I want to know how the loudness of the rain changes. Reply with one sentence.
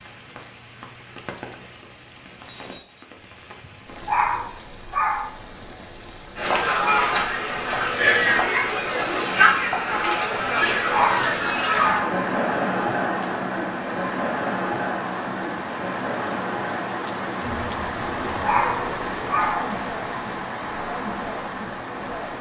The volume of the rain goes up.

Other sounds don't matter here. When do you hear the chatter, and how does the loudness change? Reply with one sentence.
You can hear the chatter from 6.3 to 22.3 s, getting quieter.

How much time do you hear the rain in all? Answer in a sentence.
You can hear the rain for 22 seconds altogether.